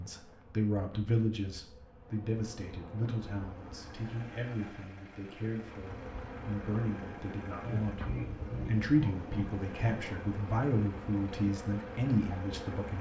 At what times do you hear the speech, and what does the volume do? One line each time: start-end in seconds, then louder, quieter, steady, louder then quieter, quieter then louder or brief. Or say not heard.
0.0-12.9 quieter then louder.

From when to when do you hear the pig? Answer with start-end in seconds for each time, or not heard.
7.6-10.1.